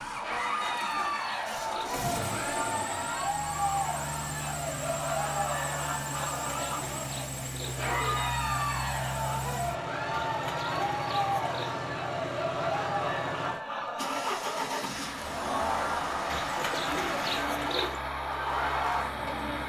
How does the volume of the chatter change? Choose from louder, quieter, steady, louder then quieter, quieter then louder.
steady.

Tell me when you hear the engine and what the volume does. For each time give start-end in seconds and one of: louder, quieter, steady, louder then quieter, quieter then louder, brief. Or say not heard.
0.0-19.6 steady.